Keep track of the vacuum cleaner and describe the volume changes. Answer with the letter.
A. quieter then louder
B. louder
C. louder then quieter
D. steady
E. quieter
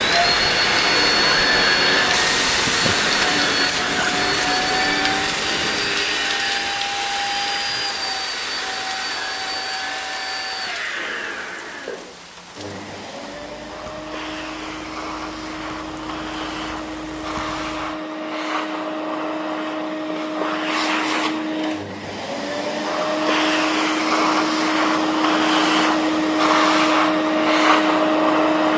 A.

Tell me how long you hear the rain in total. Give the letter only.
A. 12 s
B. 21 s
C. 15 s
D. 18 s
D.